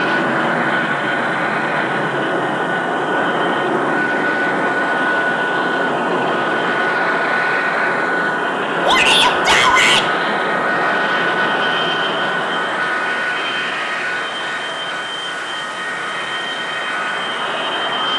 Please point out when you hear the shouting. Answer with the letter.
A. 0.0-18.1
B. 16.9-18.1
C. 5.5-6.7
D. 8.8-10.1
D.